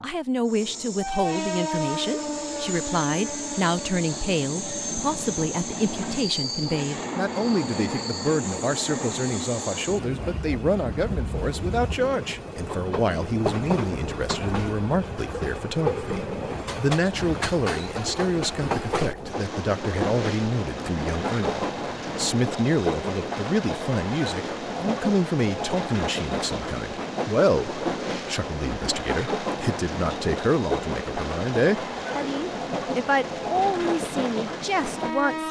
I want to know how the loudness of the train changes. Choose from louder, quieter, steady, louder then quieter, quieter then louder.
steady.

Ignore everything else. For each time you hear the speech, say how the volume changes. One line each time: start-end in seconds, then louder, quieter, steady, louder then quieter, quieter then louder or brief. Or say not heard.
0.0-35.4 steady.